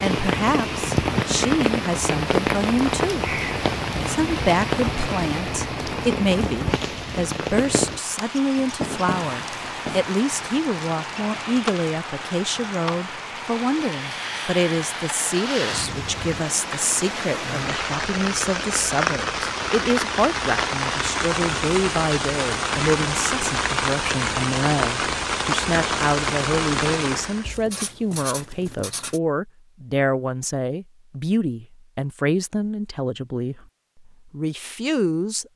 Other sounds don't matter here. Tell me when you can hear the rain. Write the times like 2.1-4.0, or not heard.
0.0-27.5.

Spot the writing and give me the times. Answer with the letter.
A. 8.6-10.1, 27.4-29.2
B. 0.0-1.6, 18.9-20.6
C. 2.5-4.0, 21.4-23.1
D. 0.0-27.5
A.